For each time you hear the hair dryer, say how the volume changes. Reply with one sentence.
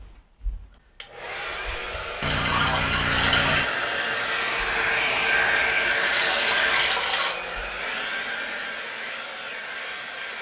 You can hear the hair dryer from 0.0 to 10.3 s, getting louder then quieter.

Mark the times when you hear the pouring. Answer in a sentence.
The pouring can be heard from 2.2 to 3.6 s and from 5.8 to 7.3 s.